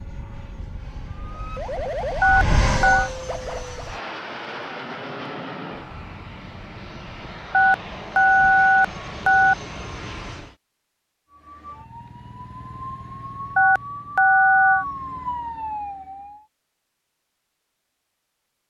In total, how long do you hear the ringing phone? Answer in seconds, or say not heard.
4 s.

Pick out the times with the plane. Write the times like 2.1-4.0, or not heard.
0.0-10.6.